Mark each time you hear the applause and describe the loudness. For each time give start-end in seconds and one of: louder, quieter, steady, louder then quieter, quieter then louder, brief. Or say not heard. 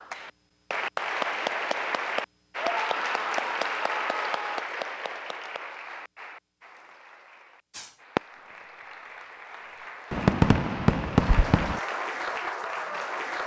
0.0-13.4 quieter then louder.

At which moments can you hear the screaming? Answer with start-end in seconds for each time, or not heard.
2.6-4.5.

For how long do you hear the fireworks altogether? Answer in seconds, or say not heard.
3 s.